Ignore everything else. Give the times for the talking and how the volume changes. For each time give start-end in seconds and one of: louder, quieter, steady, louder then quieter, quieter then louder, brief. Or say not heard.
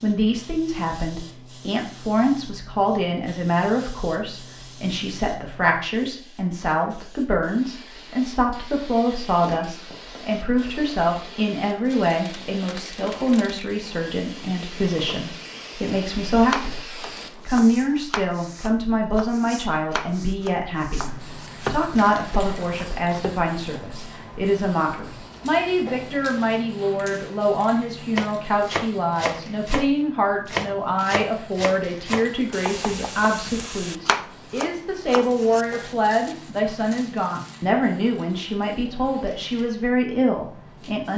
0.0-41.1 steady.